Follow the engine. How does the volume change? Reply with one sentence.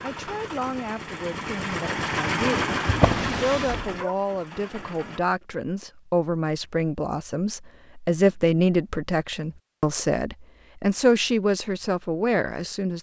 The volume of the engine goes up, then down.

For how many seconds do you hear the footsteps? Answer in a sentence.
The footsteps can't be heard in this clip.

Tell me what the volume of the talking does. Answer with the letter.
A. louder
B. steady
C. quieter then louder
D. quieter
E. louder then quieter
A.